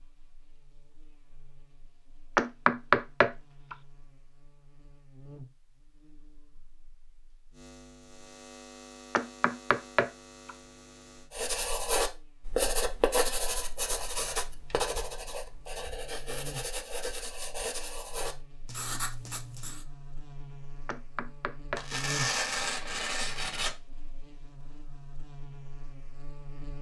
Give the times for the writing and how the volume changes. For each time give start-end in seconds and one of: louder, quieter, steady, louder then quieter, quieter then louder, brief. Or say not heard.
11.3-19.9 quieter.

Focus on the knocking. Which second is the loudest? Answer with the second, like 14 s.
3 s.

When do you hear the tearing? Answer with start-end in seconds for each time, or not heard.
21.8-23.8.